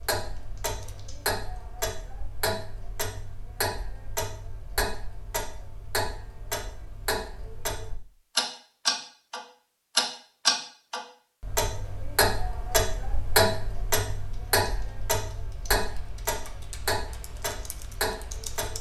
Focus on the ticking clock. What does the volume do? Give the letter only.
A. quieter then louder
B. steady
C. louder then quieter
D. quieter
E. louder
C.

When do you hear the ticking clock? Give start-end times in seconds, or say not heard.
0.0-18.7.